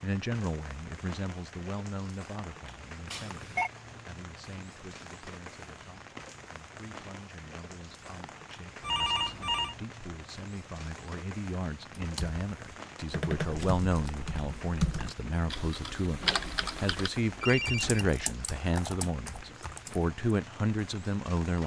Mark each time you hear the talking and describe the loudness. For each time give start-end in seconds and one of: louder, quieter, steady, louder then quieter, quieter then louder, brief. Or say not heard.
0.0-21.6 quieter then louder.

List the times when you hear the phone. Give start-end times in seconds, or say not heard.
3.0-3.7, 8.8-9.8, 16.2-18.1.